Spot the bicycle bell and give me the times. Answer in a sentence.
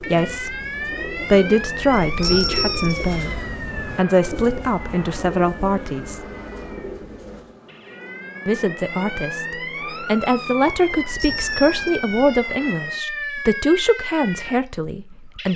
The bicycle bell can be heard from 1.9 to 3.1 s and from 10.9 to 12.2 s.